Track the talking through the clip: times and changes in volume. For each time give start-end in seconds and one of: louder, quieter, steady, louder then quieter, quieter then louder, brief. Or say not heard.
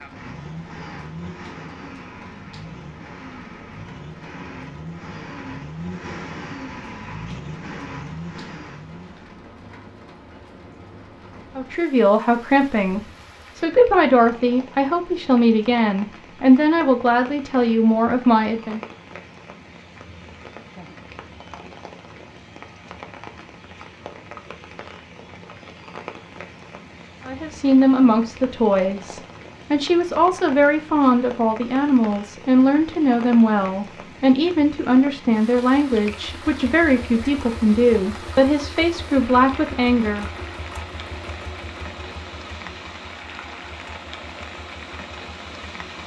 11.6-18.8 steady
27.2-40.2 steady.